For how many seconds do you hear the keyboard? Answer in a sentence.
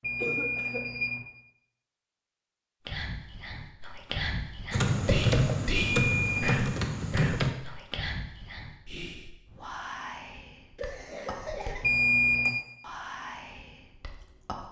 You can hear the keyboard for 3 seconds altogether.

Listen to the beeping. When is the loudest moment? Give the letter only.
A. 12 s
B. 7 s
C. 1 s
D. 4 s
A.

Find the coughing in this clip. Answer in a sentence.
You can hear the coughing from 0.1 to 0.8 s and from 10.8 to 11.9 s.